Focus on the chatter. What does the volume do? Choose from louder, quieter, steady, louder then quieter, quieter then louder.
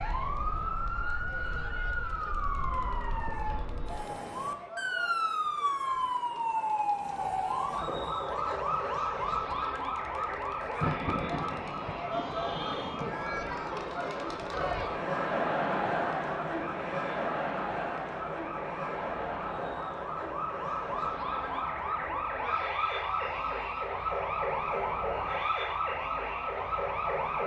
louder then quieter.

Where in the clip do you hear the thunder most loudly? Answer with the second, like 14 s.
11 s.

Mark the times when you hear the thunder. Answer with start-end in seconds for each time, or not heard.
10.7-13.7.